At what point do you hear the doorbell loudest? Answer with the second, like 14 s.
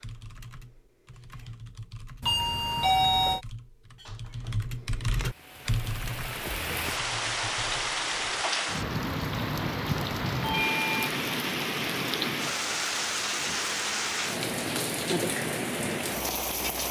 3 s.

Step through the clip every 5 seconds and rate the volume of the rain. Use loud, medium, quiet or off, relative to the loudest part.
off, loud, loud, loud.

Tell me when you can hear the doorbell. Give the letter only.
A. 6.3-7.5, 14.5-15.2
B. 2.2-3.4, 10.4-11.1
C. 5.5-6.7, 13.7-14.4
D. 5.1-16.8
B.